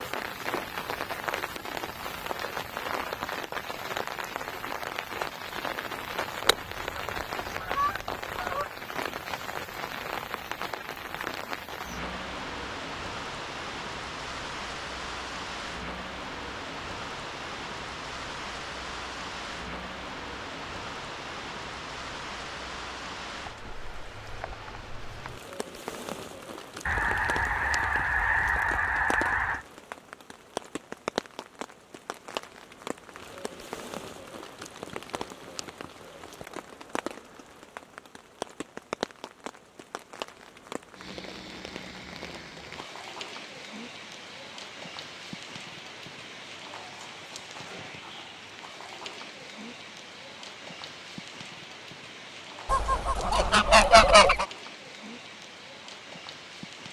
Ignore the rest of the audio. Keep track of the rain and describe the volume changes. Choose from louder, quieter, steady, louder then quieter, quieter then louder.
quieter.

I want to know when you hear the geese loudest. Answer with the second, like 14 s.
54 s.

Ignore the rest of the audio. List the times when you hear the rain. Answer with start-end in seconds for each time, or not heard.
0.0-56.8.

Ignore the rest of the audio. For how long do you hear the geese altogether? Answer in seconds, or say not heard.
6 s.